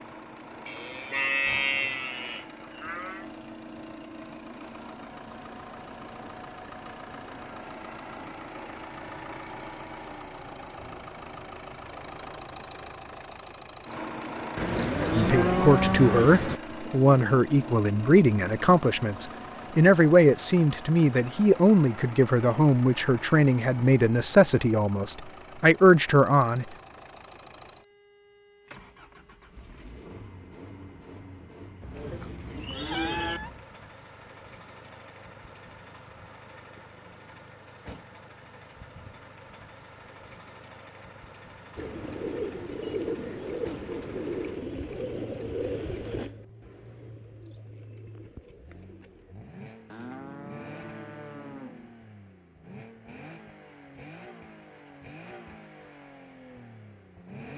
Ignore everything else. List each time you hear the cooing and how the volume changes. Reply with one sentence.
The cooing can be heard from 41.8 to 49.4 s, getting quieter.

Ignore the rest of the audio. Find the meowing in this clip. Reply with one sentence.
You can hear the meowing from 1.4 to 2.0 s and from 31.8 to 33.6 s.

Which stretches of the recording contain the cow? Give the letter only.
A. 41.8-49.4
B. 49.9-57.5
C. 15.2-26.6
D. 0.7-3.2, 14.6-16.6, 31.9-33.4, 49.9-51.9
D.